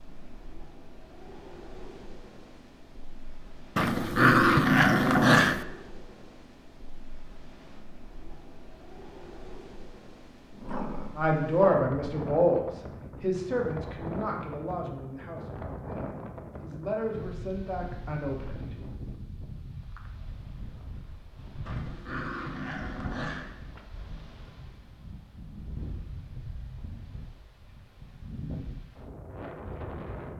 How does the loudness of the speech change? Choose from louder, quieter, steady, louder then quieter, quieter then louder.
quieter then louder.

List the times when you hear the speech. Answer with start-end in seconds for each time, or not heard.
11.2-18.6.